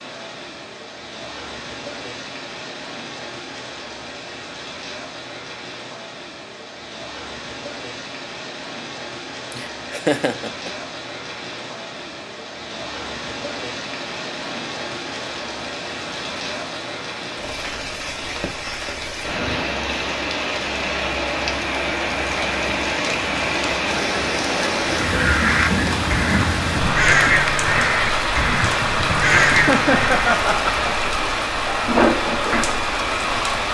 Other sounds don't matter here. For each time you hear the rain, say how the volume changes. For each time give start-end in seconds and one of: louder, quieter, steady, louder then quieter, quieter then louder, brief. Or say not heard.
0.0-33.6 louder.